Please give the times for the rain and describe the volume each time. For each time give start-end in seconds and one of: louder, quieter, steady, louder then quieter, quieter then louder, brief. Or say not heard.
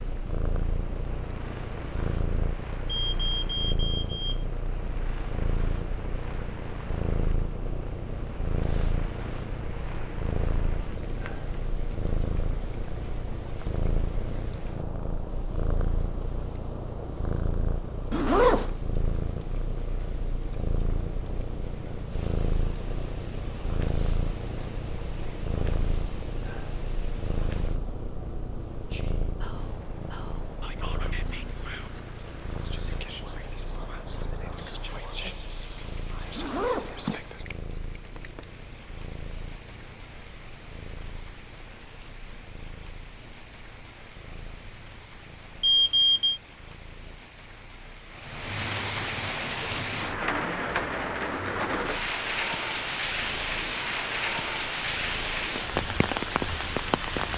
0.0-57.3 louder.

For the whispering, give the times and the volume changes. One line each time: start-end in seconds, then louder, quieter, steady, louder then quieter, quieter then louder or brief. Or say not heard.
28.7-37.5 louder.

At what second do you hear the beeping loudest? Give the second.
46 s.